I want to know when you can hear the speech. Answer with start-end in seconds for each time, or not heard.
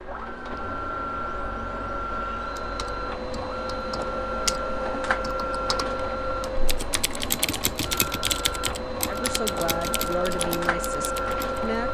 9.1-11.8.